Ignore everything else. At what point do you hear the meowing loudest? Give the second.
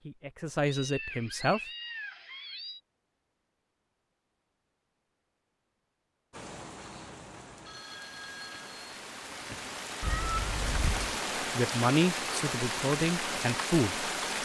10 s.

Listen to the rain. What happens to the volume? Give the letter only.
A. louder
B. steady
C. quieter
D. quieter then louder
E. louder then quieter
A.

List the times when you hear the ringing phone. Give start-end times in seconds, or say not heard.
7.7-8.8.